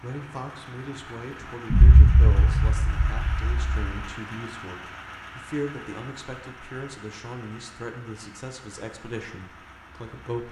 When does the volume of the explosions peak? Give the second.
2 s.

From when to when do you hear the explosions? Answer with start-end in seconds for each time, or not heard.
1.7-3.9.